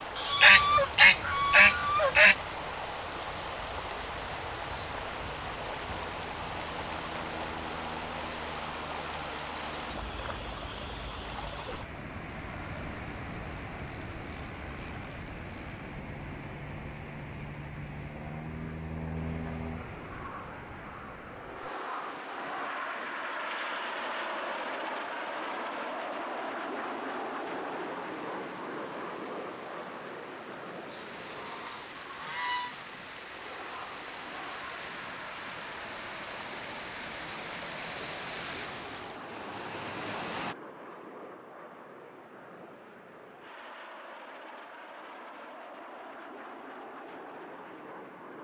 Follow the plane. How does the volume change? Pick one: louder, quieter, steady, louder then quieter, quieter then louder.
louder then quieter.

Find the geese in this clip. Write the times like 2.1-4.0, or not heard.
0.1-2.4, 30.9-32.8.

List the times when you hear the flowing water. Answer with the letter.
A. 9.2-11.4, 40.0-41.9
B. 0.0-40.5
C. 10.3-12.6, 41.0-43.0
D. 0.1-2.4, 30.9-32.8
B.